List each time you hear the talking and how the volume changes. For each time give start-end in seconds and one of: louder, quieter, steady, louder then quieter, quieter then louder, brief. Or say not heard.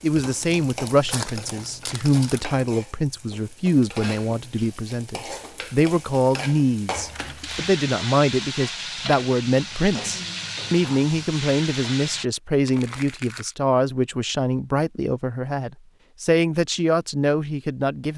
0.0-18.1 steady.